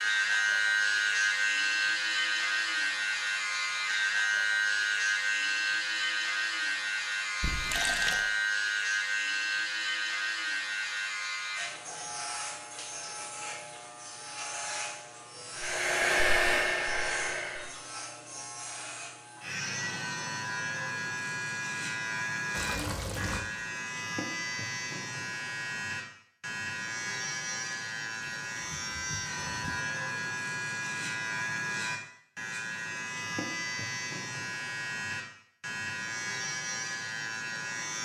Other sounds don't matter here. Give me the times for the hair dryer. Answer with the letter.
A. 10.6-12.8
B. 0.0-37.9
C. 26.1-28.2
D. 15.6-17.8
D.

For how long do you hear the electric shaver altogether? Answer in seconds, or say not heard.
38 s.